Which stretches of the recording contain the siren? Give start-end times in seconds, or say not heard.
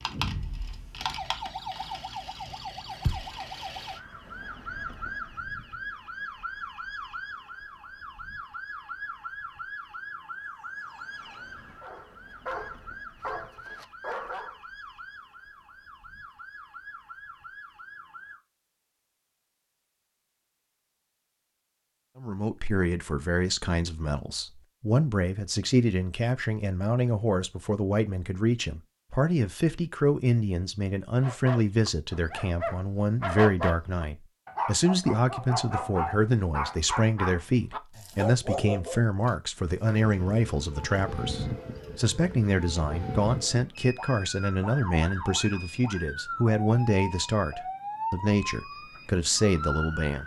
0.0-18.4, 39.9-50.2.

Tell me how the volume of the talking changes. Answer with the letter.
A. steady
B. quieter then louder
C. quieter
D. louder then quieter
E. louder
A.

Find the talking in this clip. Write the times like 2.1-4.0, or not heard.
22.1-50.2.